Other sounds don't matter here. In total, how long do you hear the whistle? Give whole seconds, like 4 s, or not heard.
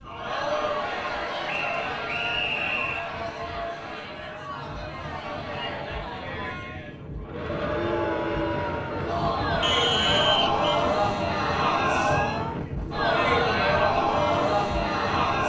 3 s.